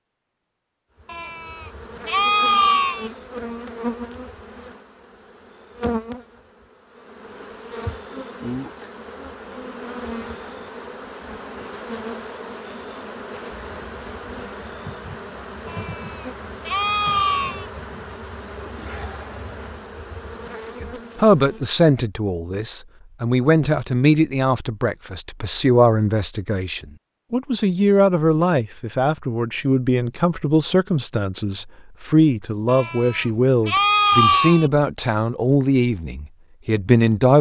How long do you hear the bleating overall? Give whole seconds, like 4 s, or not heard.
6 s.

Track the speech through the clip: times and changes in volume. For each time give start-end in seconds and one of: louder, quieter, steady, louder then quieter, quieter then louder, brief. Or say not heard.
20.8-37.3 steady.